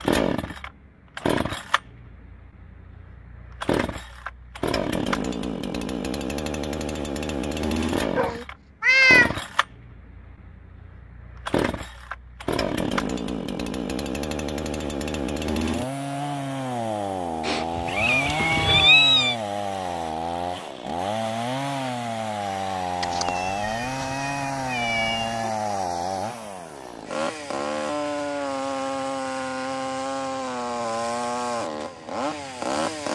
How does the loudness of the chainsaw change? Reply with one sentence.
The loudness of the chainsaw stays about the same.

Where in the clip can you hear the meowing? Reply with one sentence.
You can hear the meowing from 8.2 to 9.3 s, from 17.4 to 19.4 s and from 23.0 to 25.5 s.